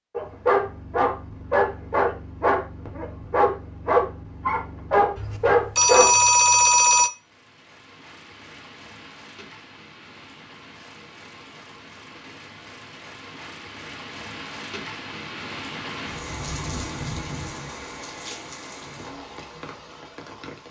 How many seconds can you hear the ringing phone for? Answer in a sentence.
The ringing phone can be heard for 2 seconds in total.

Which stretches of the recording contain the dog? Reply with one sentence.
The dog can be heard from 0.1 to 6.2 s.